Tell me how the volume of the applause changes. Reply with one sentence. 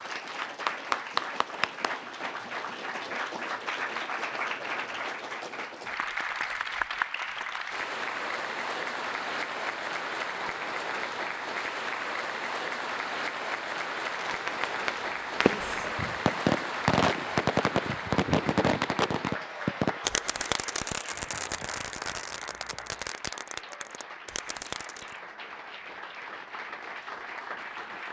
The volume of the applause goes down.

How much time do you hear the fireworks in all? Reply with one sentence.
You can hear the fireworks for 11 seconds altogether.